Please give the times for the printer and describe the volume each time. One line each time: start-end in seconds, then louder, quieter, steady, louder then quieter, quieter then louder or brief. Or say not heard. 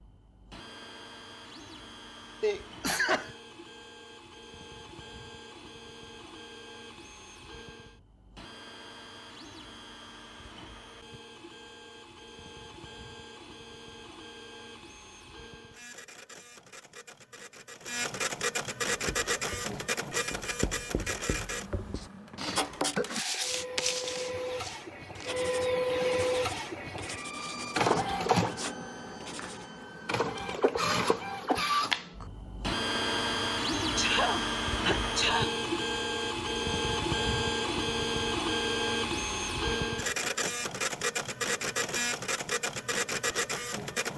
0.0-44.1 louder.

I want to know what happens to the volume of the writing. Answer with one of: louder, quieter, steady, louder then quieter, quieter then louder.
louder then quieter.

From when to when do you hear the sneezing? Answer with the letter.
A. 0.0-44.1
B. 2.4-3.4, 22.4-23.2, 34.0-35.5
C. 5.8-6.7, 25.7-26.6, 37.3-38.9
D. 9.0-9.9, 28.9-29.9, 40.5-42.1
B.